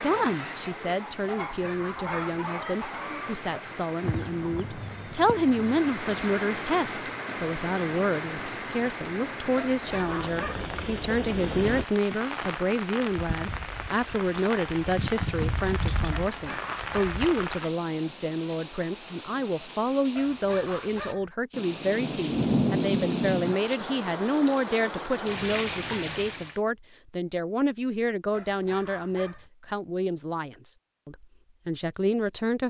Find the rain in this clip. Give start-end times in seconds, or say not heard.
0.0-26.6.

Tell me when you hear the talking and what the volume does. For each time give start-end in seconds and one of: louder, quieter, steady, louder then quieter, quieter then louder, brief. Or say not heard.
0.0-32.6 steady.